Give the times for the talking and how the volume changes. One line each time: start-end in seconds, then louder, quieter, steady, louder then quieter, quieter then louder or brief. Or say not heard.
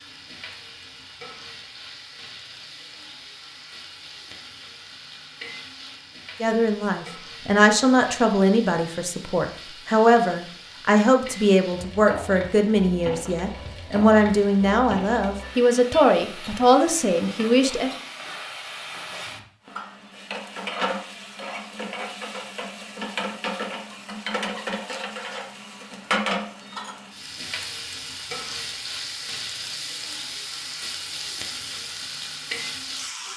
6.4-17.9 steady.